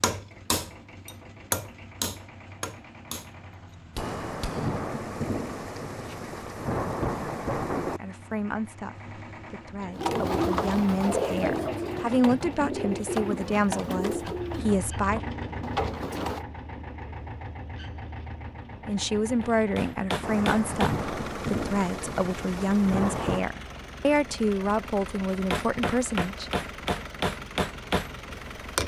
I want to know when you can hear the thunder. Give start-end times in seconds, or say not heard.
4.0-8.0, 20.2-23.4.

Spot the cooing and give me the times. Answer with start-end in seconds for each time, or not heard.
9.9-16.4.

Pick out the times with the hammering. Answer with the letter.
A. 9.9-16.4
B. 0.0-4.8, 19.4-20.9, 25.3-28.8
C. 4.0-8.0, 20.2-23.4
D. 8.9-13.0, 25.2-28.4
B.